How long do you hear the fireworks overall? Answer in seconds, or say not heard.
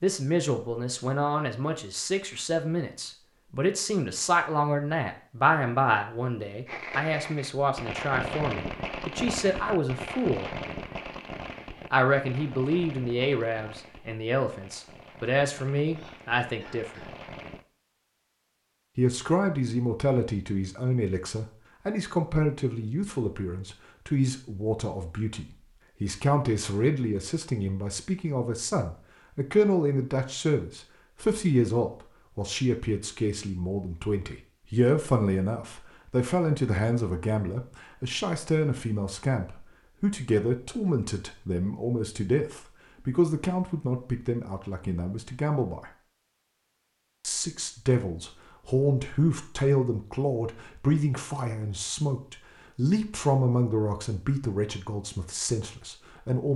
11 s.